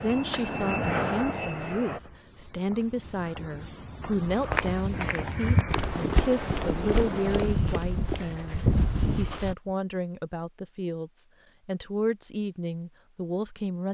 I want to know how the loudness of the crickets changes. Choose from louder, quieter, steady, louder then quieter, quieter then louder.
louder.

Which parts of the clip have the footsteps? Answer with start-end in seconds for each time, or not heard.
4.3-9.6.